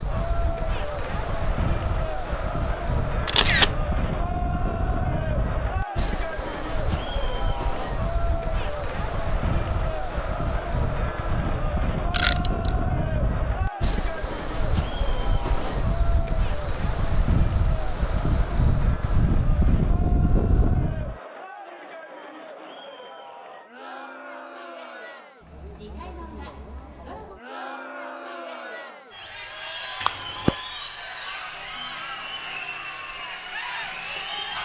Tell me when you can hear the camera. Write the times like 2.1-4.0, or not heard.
3.2-3.8, 12.1-12.7, 30.0-30.6.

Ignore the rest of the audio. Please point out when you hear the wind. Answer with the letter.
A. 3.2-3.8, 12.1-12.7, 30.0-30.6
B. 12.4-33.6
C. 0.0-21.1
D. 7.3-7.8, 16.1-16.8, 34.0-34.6
C.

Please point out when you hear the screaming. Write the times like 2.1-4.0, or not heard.
not heard.